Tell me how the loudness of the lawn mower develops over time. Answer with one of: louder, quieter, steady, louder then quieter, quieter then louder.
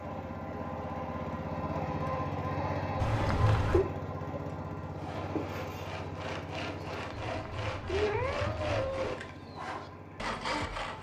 quieter.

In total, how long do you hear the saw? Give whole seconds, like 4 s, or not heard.
6 s.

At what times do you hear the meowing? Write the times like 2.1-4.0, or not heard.
3.0-3.9, 7.2-9.2.